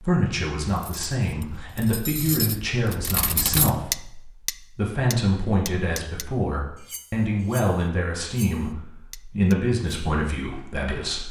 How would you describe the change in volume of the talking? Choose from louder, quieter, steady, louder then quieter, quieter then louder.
steady.